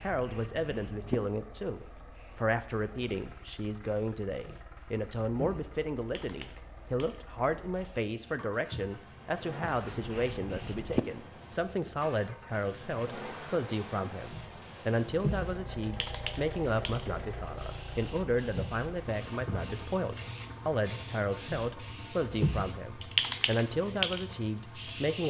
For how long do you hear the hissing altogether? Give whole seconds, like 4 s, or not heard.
25 s.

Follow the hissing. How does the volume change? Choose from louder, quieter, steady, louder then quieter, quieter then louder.
louder.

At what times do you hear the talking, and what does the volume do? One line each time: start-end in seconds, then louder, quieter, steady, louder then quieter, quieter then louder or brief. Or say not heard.
0.0-25.2 steady.